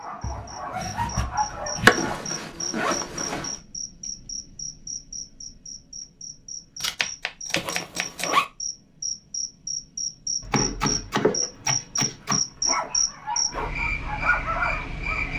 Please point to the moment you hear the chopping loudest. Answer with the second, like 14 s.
2 s.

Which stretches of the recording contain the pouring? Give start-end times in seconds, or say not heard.
not heard.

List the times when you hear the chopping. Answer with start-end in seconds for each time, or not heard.
0.2-2.1, 6.8-8.3, 10.4-12.4.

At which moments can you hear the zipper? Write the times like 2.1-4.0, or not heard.
1.9-3.6, 7.5-8.4, 12.2-13.8.